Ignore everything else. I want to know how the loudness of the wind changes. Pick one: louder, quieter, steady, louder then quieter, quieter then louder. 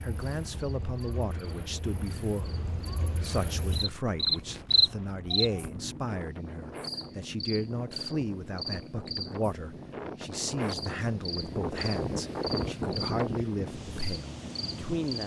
louder.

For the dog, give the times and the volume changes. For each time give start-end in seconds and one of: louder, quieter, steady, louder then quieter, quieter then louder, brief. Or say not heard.
not heard.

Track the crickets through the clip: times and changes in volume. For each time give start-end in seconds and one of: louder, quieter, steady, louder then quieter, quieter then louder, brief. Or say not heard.
0.0-15.2 louder then quieter.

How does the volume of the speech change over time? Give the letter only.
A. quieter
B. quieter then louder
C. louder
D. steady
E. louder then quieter
D.